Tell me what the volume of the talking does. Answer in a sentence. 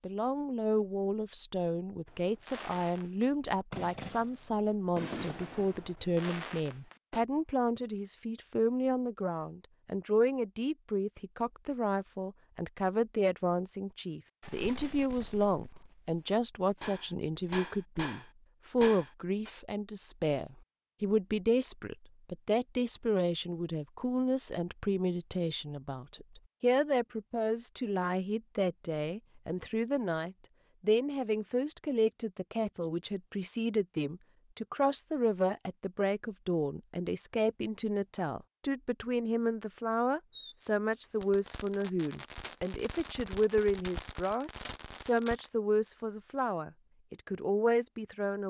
The volume of the talking stays about the same.